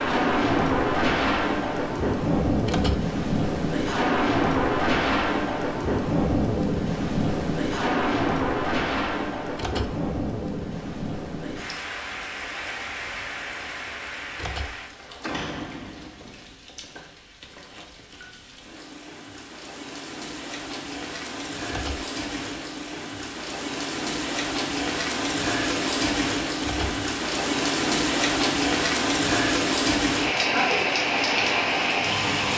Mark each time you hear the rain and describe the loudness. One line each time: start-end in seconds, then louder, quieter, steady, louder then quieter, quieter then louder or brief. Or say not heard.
0.0-32.5 quieter then louder.